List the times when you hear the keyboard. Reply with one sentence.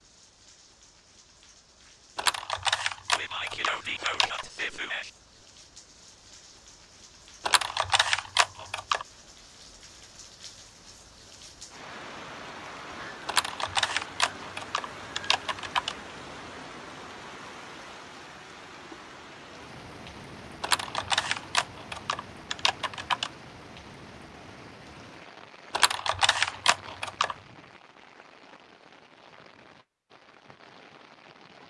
You can hear the keyboard from 2.1 to 4.5 s, from 7.4 to 9.1 s, from 13.2 to 15.9 s, from 20.6 to 23.3 s and from 25.7 to 27.4 s.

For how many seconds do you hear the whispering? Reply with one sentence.
The whispering can be heard for 2 seconds in total.